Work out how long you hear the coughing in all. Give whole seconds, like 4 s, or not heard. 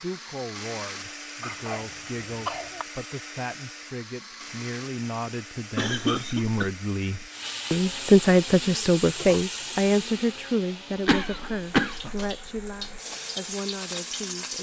4 s.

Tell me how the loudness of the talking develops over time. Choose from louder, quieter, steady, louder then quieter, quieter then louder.
louder then quieter.